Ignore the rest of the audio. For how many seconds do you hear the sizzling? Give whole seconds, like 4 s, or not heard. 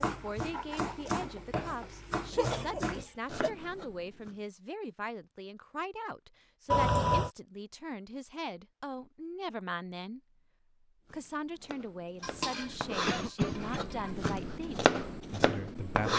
4 s.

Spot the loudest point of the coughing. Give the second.
7 s.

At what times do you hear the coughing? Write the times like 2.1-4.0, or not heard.
2.3-3.5, 6.7-7.3, 12.7-13.8.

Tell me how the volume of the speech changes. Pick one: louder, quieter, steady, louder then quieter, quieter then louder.
steady.